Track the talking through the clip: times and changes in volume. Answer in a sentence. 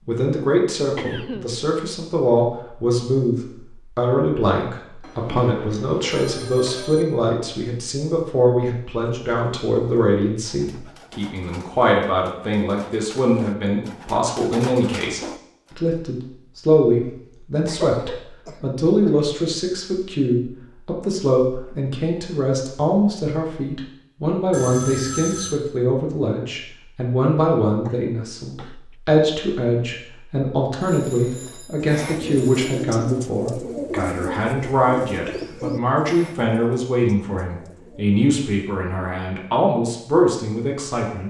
You can hear the talking from 0.1 to 41.2 s, at a steady volume.